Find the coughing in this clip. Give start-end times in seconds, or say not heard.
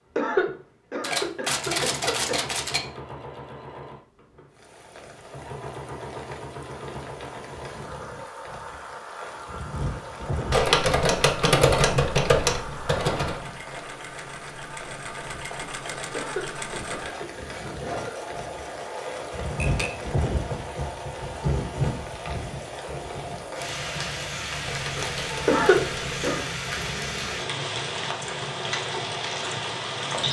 0.1-2.5, 16.1-18.4, 25.4-26.4.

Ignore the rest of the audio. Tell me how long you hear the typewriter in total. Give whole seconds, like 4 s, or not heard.
7 s.